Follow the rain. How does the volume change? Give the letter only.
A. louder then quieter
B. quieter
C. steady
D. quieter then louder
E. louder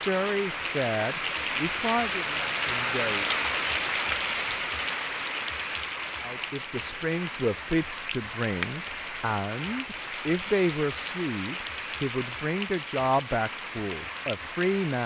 B.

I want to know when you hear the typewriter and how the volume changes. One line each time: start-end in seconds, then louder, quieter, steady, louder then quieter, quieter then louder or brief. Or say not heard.
not heard.